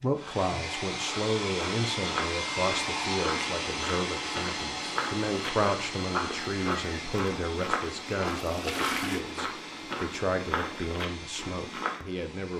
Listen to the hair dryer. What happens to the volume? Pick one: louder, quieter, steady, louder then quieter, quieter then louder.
quieter.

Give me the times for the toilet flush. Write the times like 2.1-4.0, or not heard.
8.3-9.2.